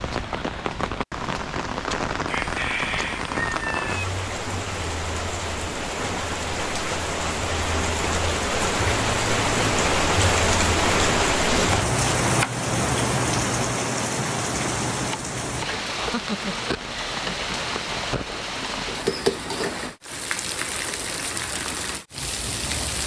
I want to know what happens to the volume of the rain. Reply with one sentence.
The volume of the rain goes up, then down.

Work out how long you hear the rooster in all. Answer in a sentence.
You can hear the rooster for 2 seconds altogether.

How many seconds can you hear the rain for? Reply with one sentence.
You can hear the rain for 23 seconds altogether.